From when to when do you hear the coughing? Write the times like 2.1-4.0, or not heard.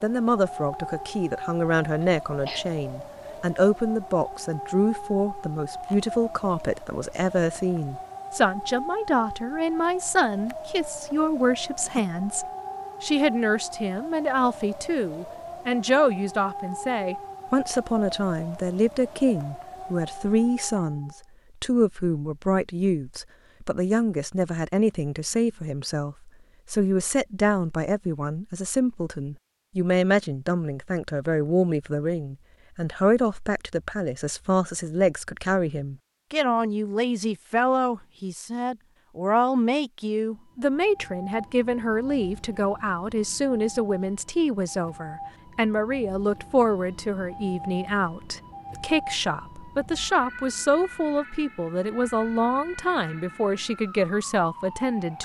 2.0-2.6.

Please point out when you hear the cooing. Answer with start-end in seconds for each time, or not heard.
not heard.